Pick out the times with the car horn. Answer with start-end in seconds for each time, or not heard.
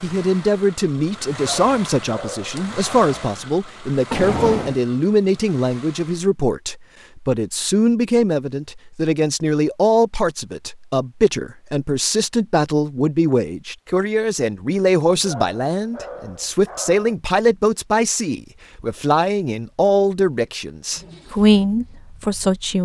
4.1-4.8.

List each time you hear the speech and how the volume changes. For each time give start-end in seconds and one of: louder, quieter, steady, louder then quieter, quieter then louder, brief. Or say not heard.
0.0-22.8 steady.